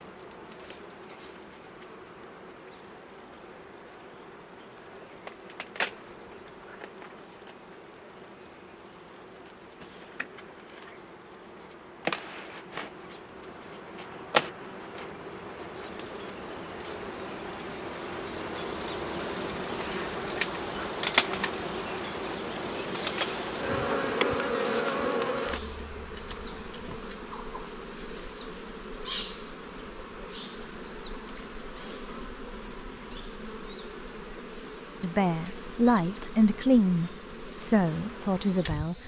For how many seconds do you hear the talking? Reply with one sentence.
You can hear the talking for 4 seconds altogether.